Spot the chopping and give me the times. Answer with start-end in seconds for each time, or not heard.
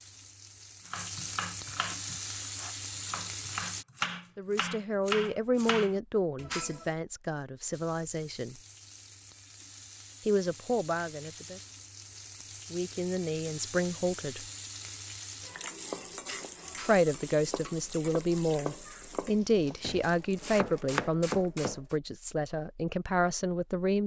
0.8-6.8, 15.8-21.9.